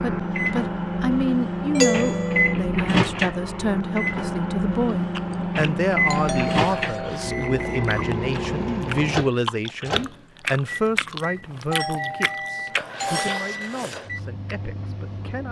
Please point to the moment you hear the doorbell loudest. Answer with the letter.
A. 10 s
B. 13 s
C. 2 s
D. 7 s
C.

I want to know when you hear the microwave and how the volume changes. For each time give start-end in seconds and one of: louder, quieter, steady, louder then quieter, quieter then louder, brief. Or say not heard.
0.0-15.4 quieter.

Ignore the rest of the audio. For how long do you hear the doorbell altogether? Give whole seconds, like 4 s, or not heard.
4 s.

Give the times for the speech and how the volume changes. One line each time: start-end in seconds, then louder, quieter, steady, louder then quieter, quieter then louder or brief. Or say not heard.
0.0-15.4 quieter.